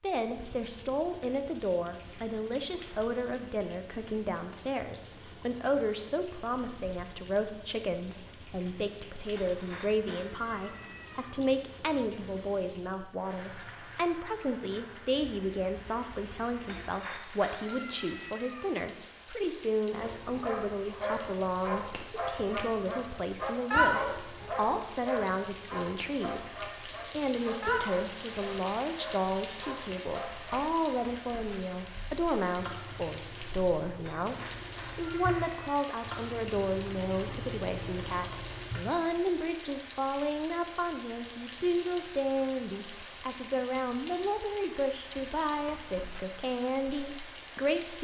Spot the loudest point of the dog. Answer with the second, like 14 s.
24 s.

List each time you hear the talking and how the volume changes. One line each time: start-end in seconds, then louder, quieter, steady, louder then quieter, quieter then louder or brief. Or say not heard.
0.0-47.9 steady.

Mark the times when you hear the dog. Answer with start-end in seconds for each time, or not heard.
20.0-30.6.